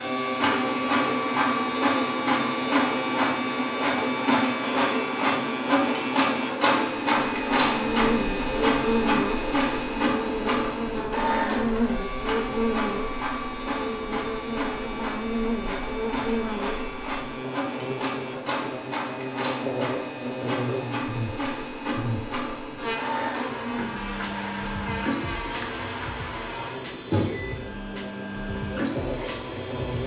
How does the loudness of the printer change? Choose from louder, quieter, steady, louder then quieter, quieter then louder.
quieter.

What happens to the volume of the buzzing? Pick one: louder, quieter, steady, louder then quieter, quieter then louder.
quieter.